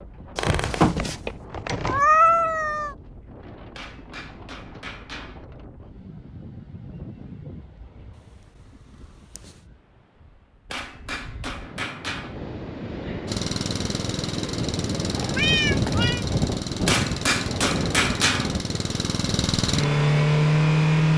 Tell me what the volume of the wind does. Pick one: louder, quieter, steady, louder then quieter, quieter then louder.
quieter then louder.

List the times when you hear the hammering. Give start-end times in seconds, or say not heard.
3.8-5.5, 10.7-12.4, 16.9-18.6.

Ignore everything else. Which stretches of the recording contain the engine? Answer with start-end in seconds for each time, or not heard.
13.2-21.1.